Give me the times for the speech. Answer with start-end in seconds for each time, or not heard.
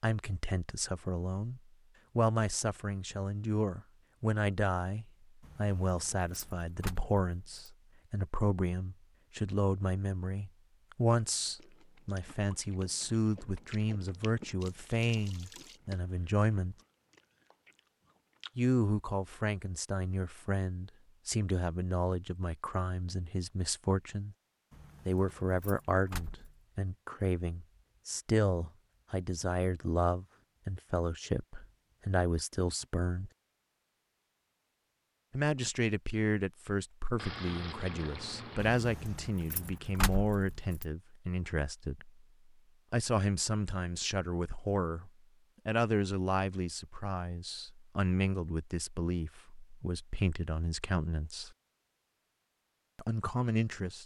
0.0-16.8, 18.6-24.4, 25.1-33.3, 35.3-42.1, 42.9-51.5, 53.0-54.0.